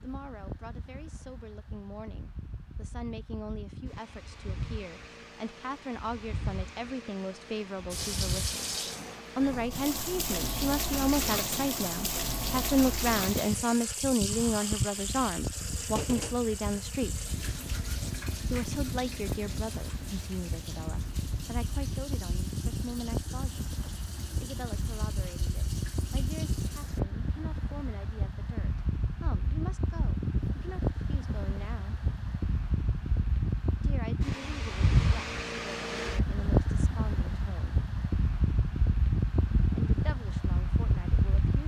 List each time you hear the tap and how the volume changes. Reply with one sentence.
You can hear the tap from 7.9 to 27.0 s, getting quieter.